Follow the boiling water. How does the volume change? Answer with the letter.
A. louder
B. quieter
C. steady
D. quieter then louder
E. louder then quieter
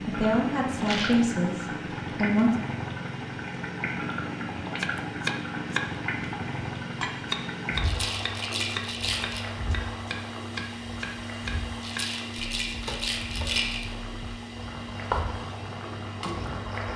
B.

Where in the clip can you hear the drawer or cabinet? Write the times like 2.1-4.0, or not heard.
not heard.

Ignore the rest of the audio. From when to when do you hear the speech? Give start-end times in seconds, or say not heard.
0.1-2.5.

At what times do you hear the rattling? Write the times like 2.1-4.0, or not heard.
0.8-1.2, 7.8-9.4, 11.8-14.1.